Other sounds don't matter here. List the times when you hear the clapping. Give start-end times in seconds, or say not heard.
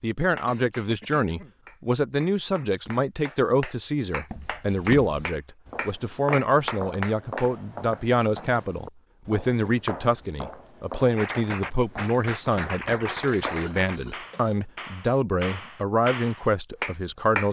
0.3-7.5, 11.2-17.4.